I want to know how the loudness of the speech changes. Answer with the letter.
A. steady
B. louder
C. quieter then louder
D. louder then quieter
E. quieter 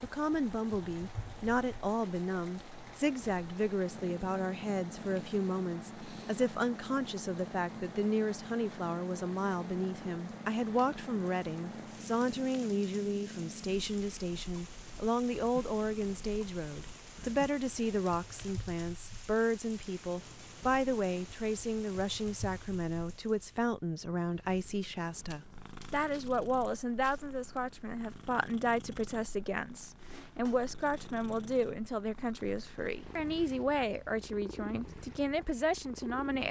A.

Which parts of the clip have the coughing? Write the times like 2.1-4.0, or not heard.
not heard.